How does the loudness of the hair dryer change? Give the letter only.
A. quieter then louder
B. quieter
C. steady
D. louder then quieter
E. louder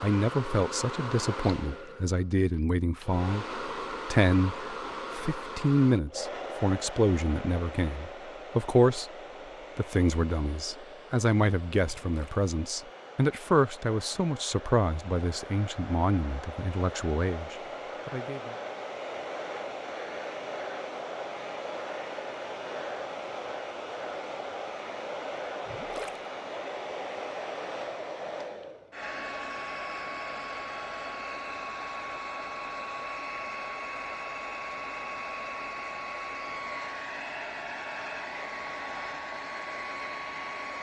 A.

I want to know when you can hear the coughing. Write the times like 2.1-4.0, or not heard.
not heard.